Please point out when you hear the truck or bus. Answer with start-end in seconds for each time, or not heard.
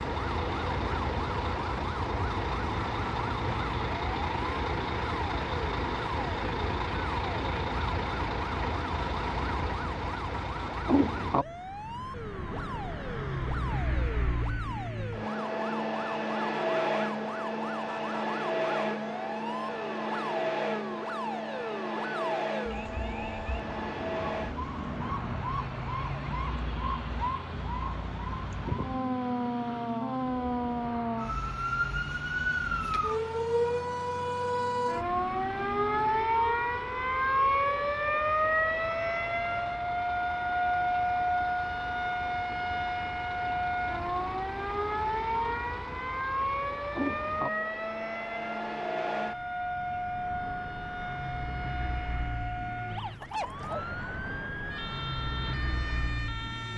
0.0-56.7.